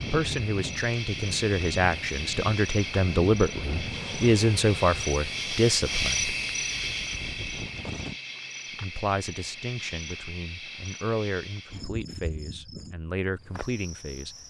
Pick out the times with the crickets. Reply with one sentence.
You can hear the crickets from 0.0 to 14.4 s.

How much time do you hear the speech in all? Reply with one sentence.
You can hear the speech for 12 seconds altogether.